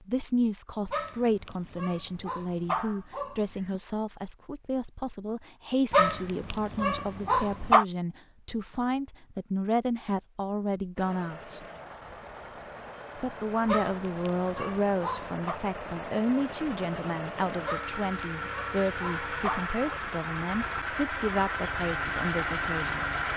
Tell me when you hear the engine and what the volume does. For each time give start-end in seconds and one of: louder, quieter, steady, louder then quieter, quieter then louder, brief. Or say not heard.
10.9-23.3 louder.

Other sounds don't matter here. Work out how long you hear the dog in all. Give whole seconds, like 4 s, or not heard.
9 s.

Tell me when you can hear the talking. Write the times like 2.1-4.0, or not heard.
0.1-11.7, 13.2-23.1.